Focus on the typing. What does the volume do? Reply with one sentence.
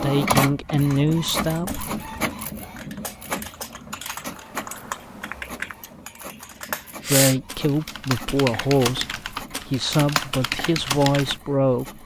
The volume of the typing goes up.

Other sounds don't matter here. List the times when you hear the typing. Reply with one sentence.
The typing can be heard from 0.8 to 11.4 s.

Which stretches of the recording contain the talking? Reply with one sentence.
You can hear the talking from 0.0 to 1.9 s, from 7.1 to 9.1 s and from 9.7 to 12.0 s.